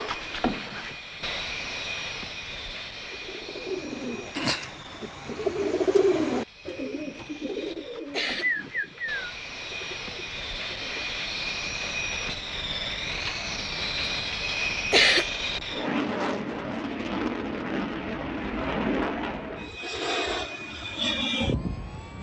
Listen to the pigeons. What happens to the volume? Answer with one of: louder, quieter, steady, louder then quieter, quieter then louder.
louder then quieter.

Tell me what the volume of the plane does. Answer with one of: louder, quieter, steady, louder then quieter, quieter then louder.
quieter then louder.